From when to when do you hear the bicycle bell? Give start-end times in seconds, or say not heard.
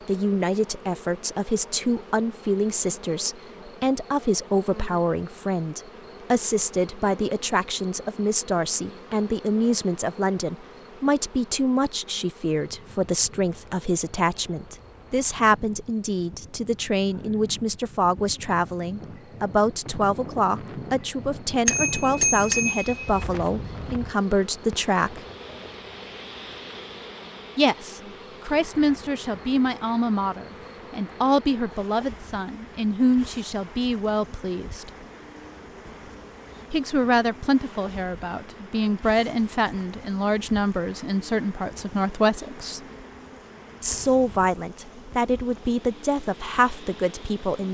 21.6-23.2.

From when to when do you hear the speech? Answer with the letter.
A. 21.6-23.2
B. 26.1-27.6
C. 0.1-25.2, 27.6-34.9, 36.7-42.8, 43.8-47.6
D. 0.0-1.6
C.